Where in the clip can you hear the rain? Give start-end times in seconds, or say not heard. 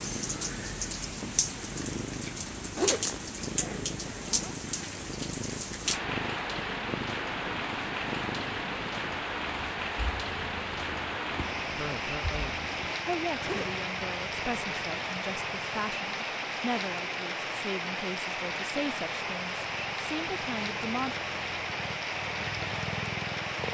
0.0-23.6.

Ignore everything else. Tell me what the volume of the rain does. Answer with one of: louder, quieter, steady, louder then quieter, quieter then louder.
steady.